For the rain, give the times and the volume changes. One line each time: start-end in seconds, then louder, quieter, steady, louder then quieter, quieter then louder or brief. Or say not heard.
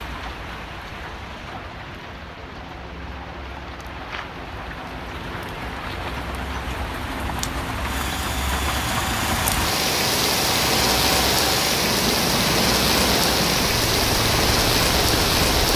0.0-15.7 louder.